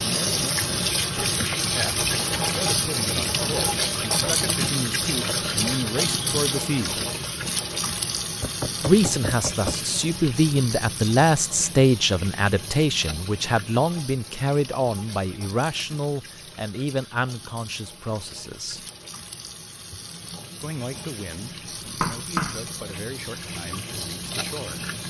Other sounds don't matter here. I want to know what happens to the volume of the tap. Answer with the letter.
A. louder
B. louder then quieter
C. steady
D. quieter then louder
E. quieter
D.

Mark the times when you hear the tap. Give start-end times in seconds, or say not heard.
0.0-25.0.